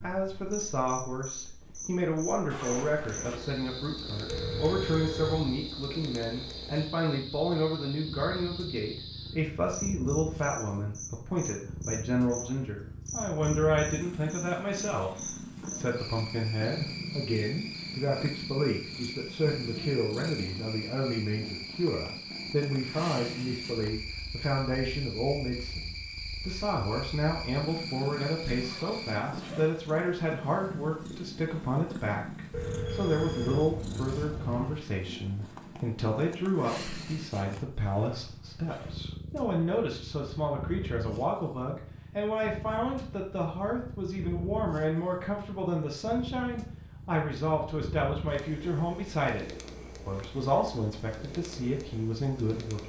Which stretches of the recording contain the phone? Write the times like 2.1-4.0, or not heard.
4.2-5.6, 32.5-34.7.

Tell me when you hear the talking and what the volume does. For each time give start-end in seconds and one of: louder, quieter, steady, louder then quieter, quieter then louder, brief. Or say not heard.
0.0-52.8 steady.